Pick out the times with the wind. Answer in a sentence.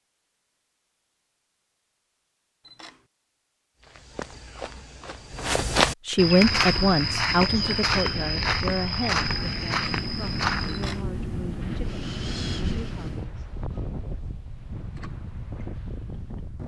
The wind can be heard from 6.3 to 16.6 s.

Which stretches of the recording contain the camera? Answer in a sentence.
The camera can be heard from 2.6 to 3.0 s and from 10.7 to 11.1 s.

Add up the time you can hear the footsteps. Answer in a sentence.
You can hear the footsteps for 7 seconds altogether.